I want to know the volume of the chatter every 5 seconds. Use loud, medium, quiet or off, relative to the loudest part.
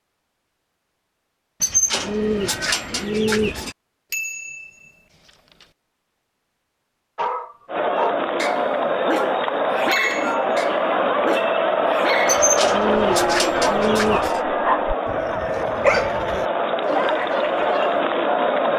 off, loud, loud, loud.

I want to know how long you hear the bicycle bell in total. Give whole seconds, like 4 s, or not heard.
2 s.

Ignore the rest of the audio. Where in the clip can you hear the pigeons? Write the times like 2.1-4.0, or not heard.
1.6-3.8, 12.2-14.4.